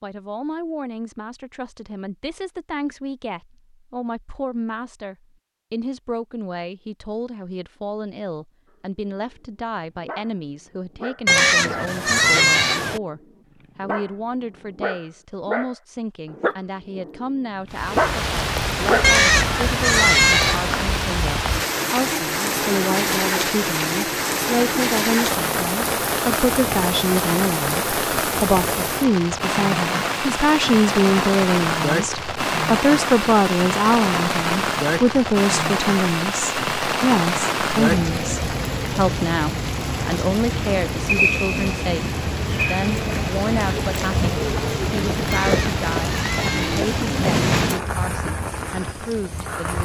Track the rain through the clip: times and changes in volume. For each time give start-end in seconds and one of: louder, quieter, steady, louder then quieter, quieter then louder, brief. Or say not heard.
17.7-49.8 steady.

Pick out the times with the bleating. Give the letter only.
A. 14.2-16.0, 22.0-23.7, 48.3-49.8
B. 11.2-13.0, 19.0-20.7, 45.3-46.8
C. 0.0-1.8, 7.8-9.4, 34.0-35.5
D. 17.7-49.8
B.